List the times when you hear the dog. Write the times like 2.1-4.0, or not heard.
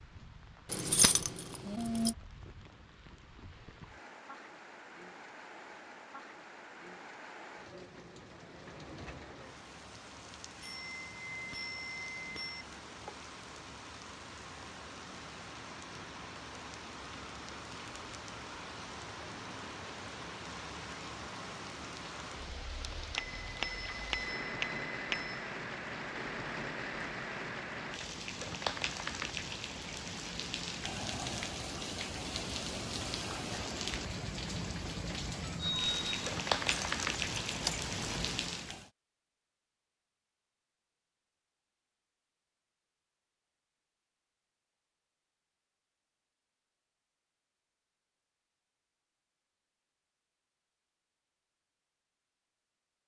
not heard.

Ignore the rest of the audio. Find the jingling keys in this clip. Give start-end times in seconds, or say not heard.
0.7-2.1, 36.8-38.4.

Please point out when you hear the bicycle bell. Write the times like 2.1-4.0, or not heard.
10.6-12.7, 23.1-25.4, 35.5-36.1.